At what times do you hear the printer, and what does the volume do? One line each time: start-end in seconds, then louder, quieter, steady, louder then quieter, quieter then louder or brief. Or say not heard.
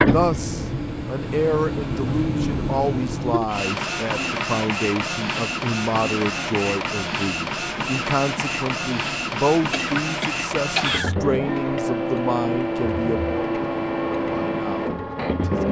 0.0-15.6 steady.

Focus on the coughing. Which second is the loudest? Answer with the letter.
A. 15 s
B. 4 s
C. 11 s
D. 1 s
C.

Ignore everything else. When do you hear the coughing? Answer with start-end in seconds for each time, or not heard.
9.7-11.2.